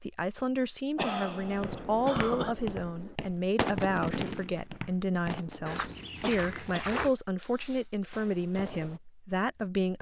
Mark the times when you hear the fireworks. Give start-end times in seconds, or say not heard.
1.6-9.0.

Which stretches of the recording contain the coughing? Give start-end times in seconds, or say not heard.
0.9-2.5, 6.2-8.1.